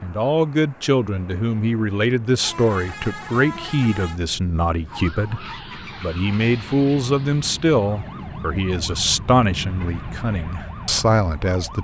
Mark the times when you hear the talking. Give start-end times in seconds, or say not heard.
0.0-11.7.